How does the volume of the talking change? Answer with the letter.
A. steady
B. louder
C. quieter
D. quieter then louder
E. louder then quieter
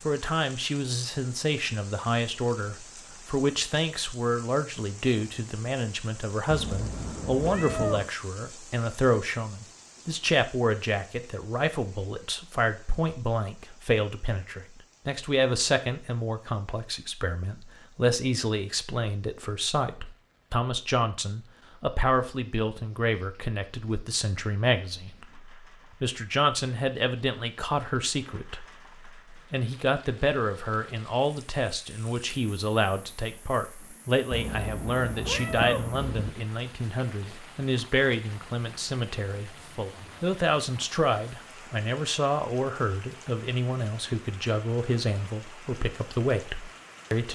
A.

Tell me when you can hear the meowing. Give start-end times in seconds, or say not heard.
6.5-8.1, 34.3-36.3.